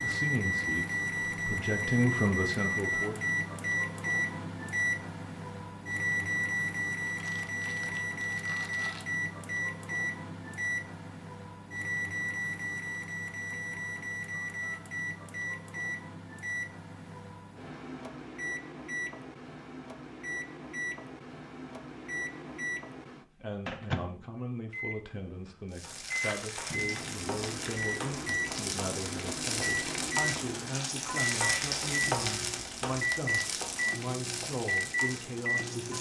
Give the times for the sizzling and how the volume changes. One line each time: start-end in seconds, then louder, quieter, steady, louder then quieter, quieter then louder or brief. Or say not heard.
25.7-35.9 louder then quieter.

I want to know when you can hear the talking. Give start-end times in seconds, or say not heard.
0.0-3.4, 23.3-35.9.